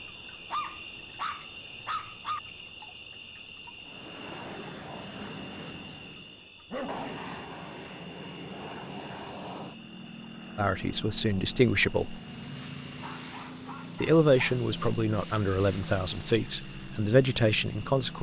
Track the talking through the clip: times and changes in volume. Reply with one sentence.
The talking can be heard briefly from 10.6 to 12.2 s; and from 14.0 to 18.1 s, getting quieter then louder.